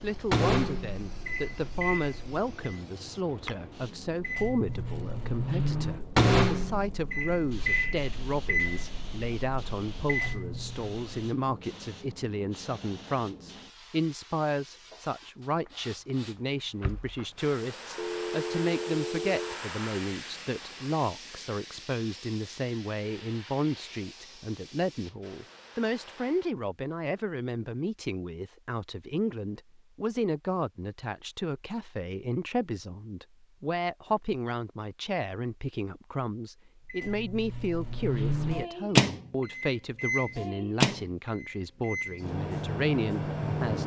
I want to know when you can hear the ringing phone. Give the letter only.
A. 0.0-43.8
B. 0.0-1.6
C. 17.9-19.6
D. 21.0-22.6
C.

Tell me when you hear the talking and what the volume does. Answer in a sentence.
You can hear the talking from 0.0 to 43.8 s, at a steady volume.